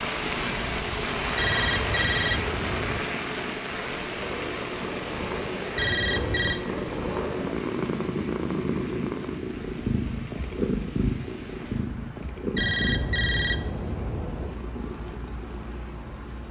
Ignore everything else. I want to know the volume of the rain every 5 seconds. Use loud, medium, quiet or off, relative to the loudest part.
loud, medium, quiet, quiet.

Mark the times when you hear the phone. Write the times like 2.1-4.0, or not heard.
1.4-3.0, 5.8-6.6, 12.6-14.6.